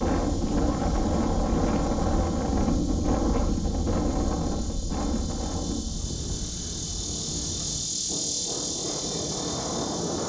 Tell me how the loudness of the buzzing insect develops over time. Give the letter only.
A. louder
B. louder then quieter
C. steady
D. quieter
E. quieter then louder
A.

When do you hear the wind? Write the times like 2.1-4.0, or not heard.
0.0-10.2.